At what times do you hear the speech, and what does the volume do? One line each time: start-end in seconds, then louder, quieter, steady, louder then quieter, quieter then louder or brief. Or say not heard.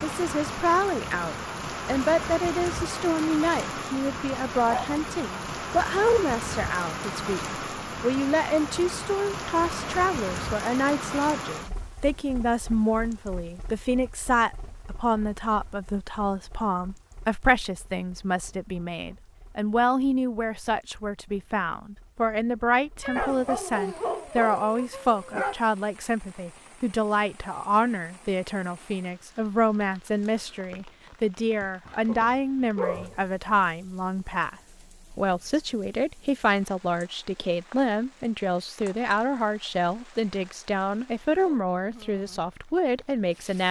0.0-34.5 steady
35.1-43.6 steady.